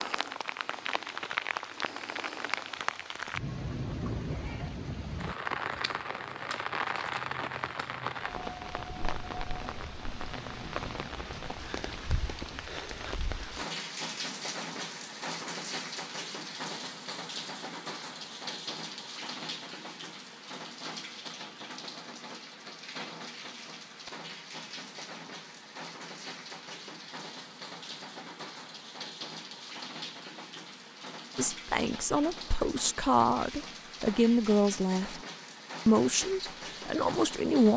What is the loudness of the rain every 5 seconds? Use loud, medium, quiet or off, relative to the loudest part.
loud, loud, loud, loud, medium, medium, medium, medium.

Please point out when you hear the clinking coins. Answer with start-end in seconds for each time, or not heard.
not heard.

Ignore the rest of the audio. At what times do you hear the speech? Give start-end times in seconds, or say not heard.
31.4-35.2, 35.9-37.7.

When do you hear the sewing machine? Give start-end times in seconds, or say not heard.
not heard.